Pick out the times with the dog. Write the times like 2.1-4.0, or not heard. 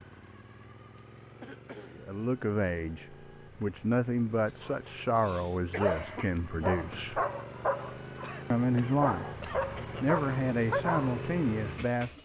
4.6-8.3, 9.0-11.2.